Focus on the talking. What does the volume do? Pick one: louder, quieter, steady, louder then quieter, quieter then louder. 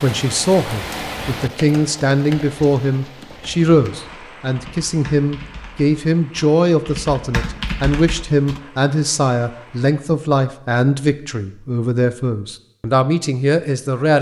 steady.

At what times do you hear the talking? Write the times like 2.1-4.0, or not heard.
0.0-14.1.